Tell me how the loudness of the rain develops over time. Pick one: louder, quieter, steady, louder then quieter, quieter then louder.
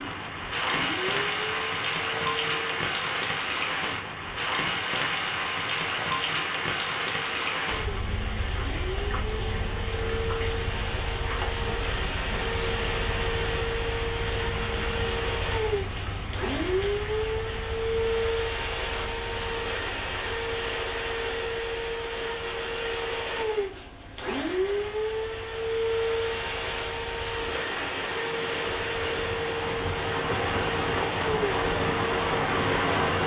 quieter then louder.